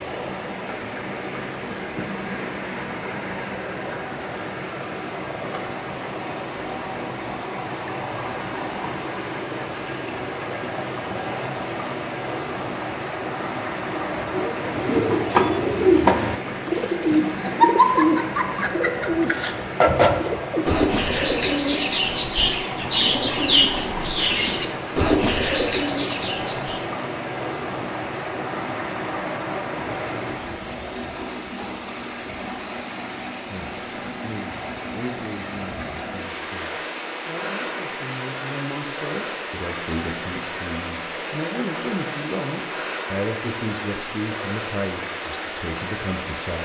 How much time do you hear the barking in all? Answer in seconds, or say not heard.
not heard.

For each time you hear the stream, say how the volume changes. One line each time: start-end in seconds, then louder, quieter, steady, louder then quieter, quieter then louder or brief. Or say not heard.
0.0-46.6 steady.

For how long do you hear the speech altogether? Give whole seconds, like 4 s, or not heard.
13 s.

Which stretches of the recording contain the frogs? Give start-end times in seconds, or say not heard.
not heard.